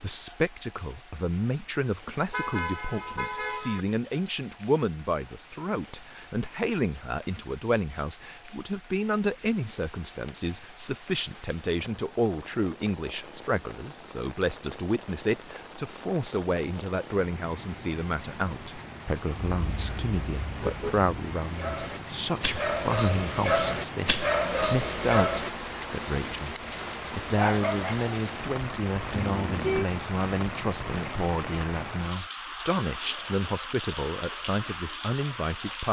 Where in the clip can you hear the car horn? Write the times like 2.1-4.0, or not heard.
2.3-3.9, 19.4-21.1, 29.1-29.9.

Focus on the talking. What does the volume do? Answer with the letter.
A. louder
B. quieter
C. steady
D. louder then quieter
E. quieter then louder
C.